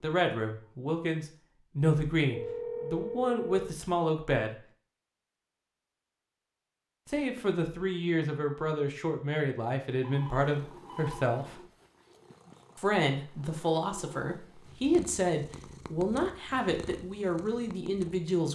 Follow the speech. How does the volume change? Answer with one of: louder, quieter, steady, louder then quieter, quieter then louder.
steady.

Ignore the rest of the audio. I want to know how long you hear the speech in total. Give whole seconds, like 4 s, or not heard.
15 s.